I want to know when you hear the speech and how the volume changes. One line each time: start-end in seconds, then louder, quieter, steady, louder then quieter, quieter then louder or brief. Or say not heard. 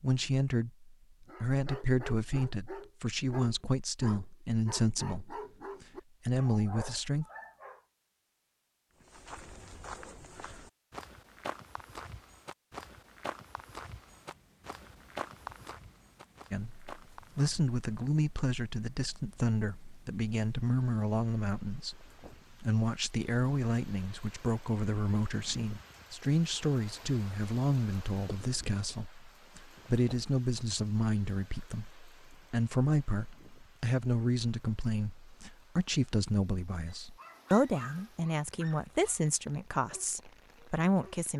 0.0-7.2 steady
16.5-41.3 steady.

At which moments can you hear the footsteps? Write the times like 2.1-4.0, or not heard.
9.0-17.9.